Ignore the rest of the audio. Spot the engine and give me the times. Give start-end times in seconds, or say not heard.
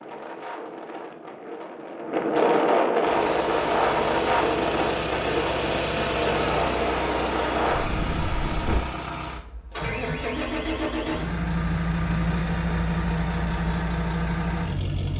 3.0-15.1.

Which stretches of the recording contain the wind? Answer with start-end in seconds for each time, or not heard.
0.0-8.8.